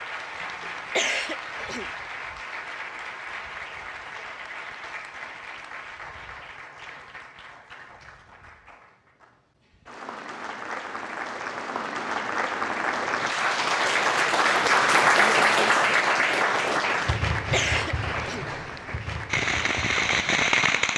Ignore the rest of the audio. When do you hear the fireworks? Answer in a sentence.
You can hear the fireworks from 19.2 to 20.9 s.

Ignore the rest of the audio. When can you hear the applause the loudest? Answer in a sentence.
The loudest moment of the applause is at 15 seconds.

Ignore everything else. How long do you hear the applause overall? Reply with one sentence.
The applause can be heard for 21 seconds in total.